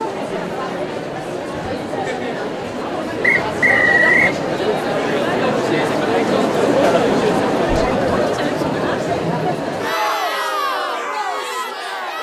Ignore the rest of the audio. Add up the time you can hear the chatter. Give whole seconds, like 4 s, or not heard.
12 s.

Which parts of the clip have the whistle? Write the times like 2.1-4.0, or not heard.
3.2-4.3.